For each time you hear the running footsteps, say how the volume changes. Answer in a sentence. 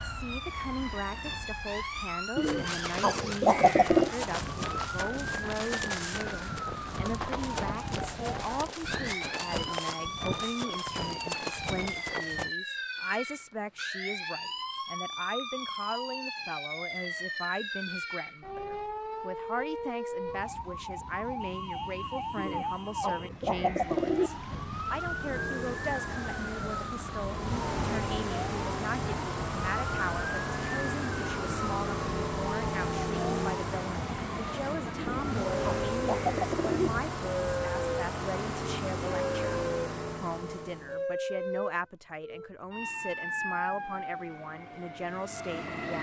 The running footsteps can be heard from 2.4 to 12.5 s, at a steady volume.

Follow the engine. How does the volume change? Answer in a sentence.
The loudness of the engine stays about the same.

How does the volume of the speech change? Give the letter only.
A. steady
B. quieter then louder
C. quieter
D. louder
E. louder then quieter
A.